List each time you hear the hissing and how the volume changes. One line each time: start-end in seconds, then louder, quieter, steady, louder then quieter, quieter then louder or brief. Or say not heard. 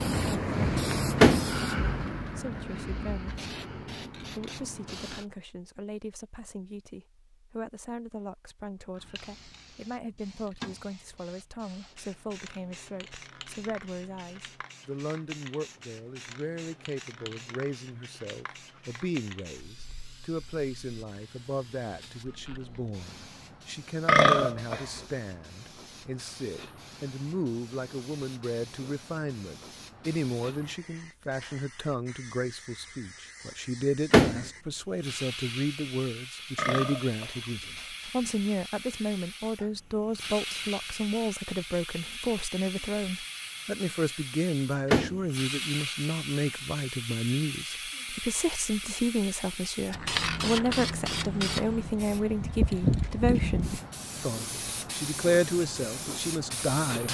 0.0-5.2 quieter
8.9-57.1 louder.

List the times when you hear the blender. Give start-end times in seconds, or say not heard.
not heard.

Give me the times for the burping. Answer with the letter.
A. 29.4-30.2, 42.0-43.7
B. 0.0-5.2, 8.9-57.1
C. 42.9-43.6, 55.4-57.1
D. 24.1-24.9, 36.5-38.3
D.